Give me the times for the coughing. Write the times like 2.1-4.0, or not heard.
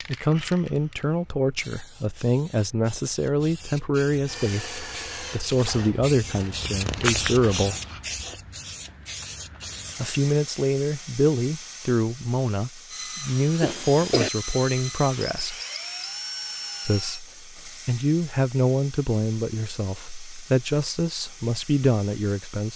13.6-14.3.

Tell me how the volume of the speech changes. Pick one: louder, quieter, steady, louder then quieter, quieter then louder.
steady.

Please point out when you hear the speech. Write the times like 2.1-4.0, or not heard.
0.1-7.8, 9.9-15.6, 16.9-22.7.